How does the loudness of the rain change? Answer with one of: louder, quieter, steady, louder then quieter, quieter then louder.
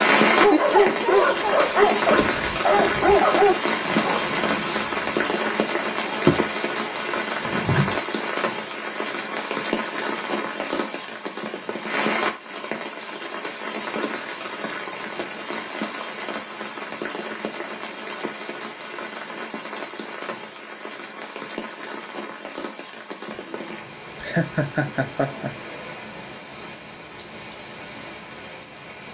quieter.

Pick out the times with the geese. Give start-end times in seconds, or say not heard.
not heard.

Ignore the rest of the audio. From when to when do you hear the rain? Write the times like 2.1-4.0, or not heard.
0.0-29.0.